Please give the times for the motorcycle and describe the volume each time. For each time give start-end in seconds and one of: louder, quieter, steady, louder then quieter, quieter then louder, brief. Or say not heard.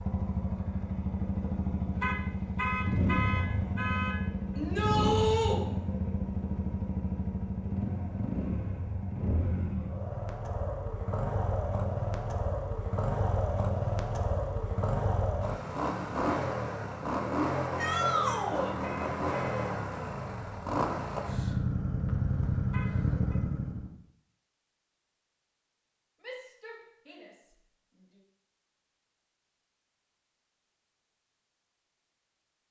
0.0-23.9 steady.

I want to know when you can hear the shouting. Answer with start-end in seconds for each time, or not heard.
4.5-5.6, 17.8-18.8, 26.2-27.3.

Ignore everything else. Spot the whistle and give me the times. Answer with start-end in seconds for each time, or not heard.
not heard.